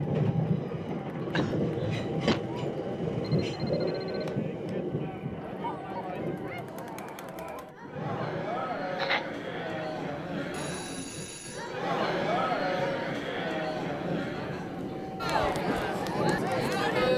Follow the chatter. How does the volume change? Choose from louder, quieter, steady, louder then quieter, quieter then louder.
louder.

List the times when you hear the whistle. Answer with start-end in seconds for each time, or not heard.
not heard.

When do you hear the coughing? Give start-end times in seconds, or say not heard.
1.4-2.4, 8.9-9.3.